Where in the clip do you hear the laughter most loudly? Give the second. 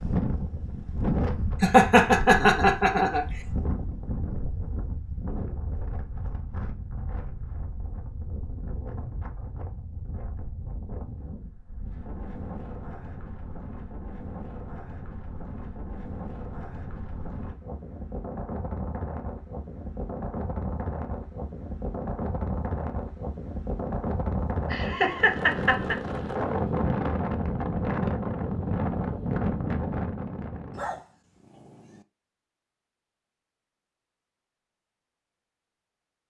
2 s.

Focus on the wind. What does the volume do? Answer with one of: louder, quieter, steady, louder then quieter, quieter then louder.
quieter then louder.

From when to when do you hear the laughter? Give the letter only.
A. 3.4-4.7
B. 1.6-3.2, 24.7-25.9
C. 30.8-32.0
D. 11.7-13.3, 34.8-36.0
B.